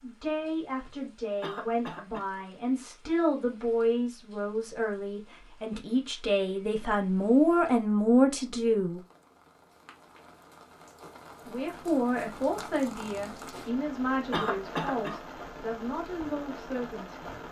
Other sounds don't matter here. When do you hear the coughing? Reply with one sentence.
You can hear the coughing from 1.4 to 2.3 s and from 14.3 to 15.2 s.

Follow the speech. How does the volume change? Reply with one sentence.
The volume of the speech goes up, then down.